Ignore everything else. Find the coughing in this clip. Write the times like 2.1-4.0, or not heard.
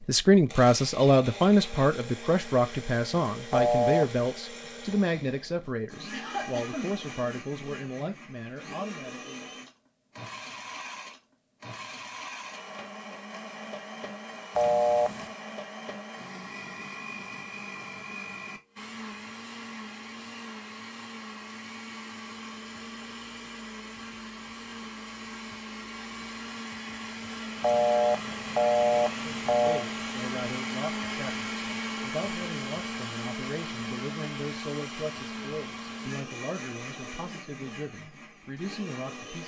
6.1-7.2.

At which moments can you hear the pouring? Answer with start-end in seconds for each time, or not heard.
not heard.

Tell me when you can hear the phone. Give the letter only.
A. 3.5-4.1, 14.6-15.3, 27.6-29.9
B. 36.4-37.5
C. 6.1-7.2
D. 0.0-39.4
A.